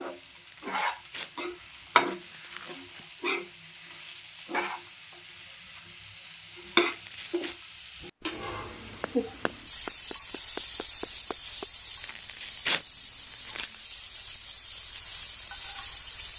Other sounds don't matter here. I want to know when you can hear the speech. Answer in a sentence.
The speech can't be heard in this clip.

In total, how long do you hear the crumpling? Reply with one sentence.
The crumpling can be heard for 5 seconds in total.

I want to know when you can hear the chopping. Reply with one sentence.
The chopping can be heard from 8.2 to 11.7 s.